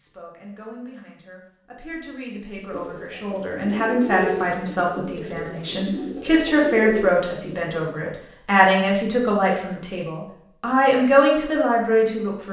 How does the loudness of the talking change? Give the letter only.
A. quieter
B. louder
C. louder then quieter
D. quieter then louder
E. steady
B.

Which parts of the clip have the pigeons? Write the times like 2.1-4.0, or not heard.
2.7-8.0.